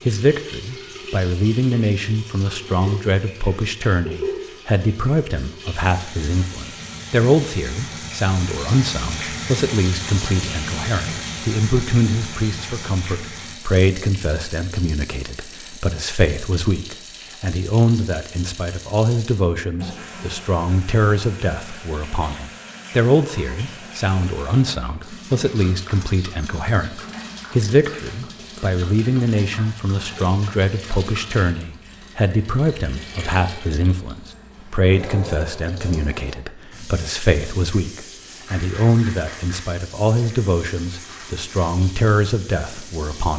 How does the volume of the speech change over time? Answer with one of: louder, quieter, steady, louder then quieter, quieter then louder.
steady.